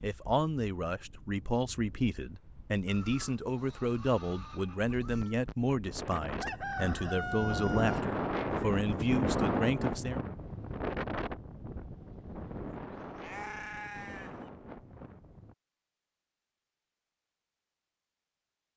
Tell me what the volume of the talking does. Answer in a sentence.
The loudness of the talking stays about the same.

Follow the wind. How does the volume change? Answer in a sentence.
The volume of the wind goes up, then down.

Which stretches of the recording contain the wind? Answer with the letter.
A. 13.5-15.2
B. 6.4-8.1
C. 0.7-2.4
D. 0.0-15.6
D.